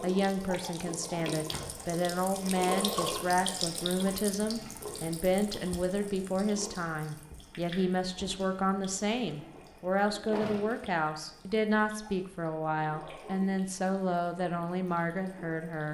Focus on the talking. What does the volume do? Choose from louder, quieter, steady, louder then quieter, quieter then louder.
steady.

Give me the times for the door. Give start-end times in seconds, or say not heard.
1.3-1.9, 10.3-10.8.